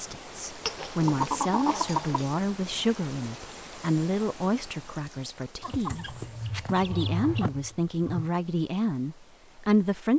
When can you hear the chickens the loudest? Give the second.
1 s.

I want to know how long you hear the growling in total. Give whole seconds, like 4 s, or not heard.
4 s.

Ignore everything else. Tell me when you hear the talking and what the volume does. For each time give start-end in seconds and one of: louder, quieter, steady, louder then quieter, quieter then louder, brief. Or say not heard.
0.0-10.1 steady.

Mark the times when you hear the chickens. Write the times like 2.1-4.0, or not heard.
0.7-2.2, 5.6-7.5.